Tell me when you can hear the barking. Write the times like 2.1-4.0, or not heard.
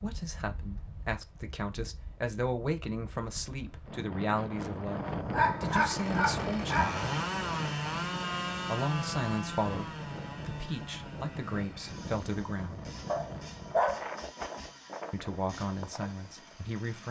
5.3-7.0, 13.1-14.1.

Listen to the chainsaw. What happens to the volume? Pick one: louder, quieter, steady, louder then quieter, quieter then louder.
quieter.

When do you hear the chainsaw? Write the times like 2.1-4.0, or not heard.
5.7-17.0.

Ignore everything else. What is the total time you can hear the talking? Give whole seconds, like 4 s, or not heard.
13 s.